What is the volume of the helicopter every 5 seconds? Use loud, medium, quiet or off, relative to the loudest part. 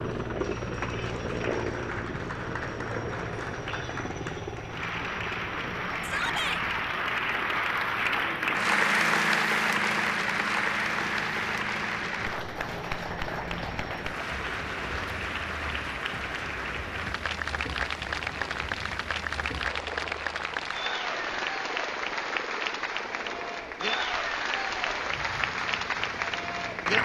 loud, medium, medium, medium, medium, medium.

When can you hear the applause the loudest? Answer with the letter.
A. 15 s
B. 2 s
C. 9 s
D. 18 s
C.